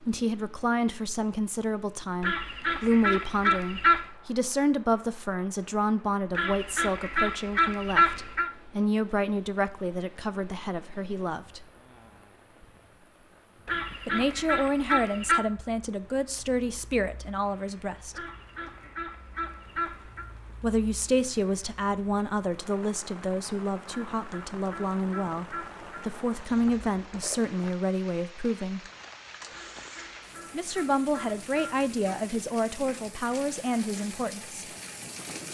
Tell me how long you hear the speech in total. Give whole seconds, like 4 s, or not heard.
28 s.